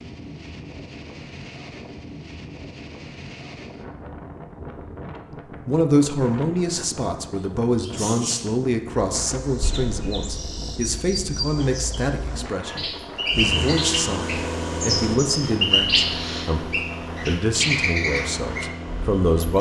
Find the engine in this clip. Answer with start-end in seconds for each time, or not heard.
13.2-19.5.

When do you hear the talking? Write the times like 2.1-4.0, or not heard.
5.3-19.5.